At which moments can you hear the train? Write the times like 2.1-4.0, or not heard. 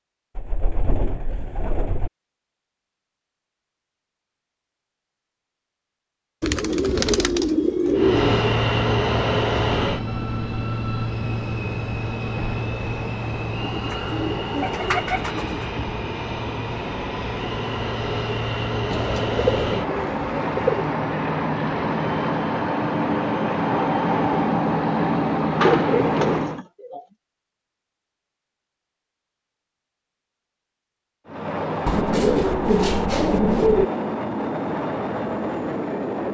8.0-26.6, 31.2-36.2.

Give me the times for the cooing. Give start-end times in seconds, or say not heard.
0.3-2.1, 6.4-8.4, 13.7-15.8, 18.9-20.9, 25.6-27.0, 31.9-33.9.